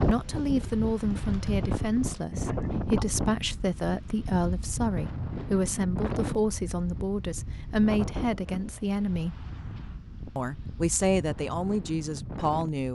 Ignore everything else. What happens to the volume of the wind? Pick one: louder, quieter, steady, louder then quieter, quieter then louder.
quieter.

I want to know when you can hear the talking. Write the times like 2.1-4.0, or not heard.
0.1-9.4, 10.3-12.9.